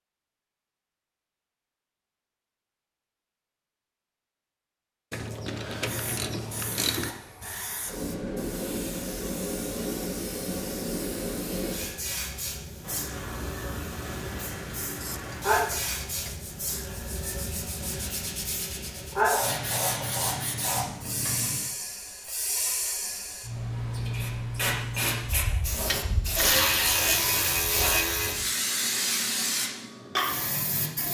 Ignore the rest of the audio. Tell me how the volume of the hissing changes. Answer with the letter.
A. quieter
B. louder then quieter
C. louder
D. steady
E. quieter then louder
D.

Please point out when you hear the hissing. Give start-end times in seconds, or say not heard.
5.8-31.0.